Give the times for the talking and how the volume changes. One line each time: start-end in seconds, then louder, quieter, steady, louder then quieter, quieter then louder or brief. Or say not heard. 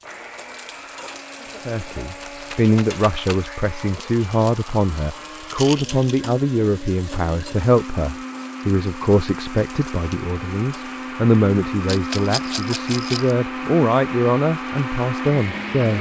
1.6-15.9 steady.